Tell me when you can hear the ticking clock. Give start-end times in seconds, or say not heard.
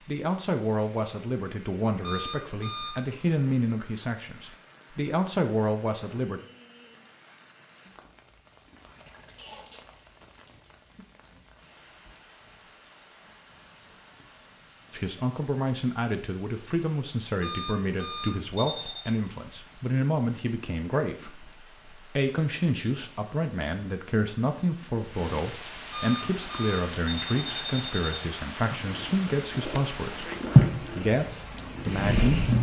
not heard.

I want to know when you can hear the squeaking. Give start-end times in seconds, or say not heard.
9.3-9.8.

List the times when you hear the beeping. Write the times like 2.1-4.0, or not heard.
2.0-3.0, 17.4-19.1, 25.9-28.2.